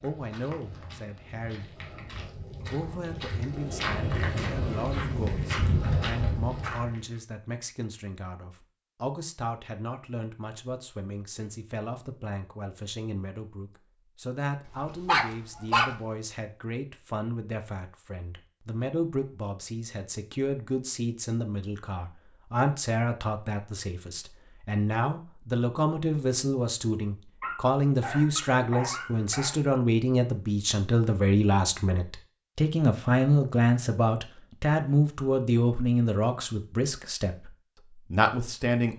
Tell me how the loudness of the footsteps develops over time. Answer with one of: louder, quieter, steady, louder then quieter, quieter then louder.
louder.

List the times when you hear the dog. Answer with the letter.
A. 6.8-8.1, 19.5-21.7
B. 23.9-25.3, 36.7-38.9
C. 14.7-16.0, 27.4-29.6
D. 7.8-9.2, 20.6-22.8
C.